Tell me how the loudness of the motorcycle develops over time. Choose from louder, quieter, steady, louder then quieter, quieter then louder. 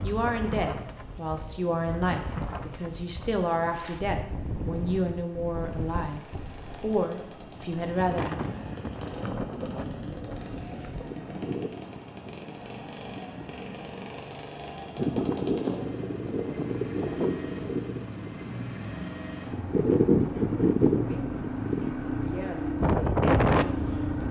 louder.